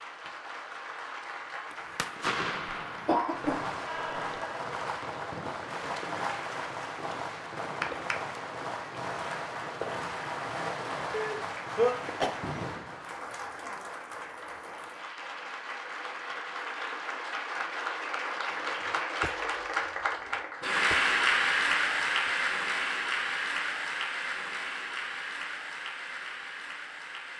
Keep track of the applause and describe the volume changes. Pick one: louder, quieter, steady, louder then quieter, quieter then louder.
louder.